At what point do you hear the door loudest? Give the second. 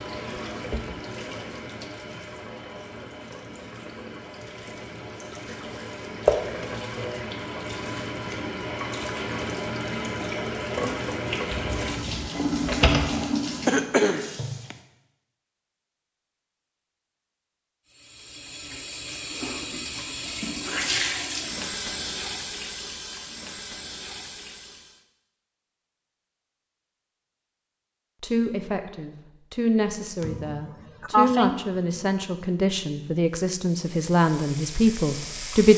13 s.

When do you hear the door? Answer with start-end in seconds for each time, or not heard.
11.5-13.2.